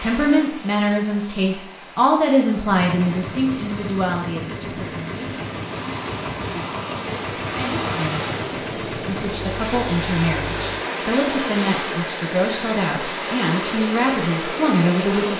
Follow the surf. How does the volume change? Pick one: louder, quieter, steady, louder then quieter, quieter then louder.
louder.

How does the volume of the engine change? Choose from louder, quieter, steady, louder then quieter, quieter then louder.
steady.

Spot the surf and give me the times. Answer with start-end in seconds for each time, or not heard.
0.0-15.3.